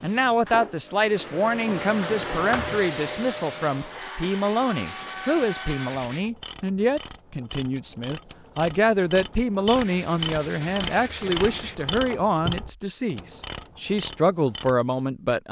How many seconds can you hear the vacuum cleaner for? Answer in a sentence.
The vacuum cleaner can be heard for 6 seconds in total.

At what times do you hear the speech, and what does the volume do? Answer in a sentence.
The speech can be heard from 0.0 to 15.4 s, at a steady volume.